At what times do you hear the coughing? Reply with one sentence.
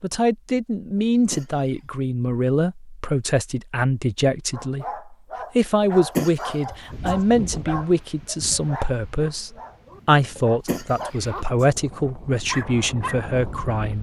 You can hear the coughing from 0.9 to 1.9 s, from 5.8 to 7.2 s and from 10.3 to 11.7 s.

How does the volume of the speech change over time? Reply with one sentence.
The volume of the speech stays about the same.